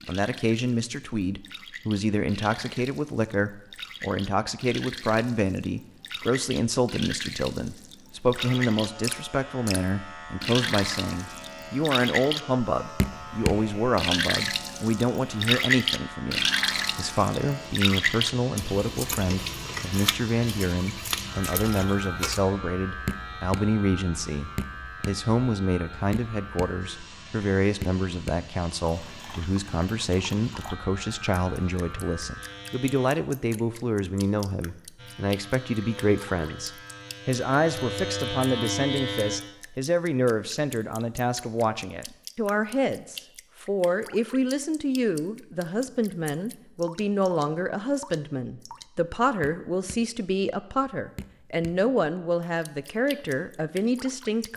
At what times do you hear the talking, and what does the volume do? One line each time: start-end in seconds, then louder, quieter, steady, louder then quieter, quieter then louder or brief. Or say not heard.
0.1-54.5 steady.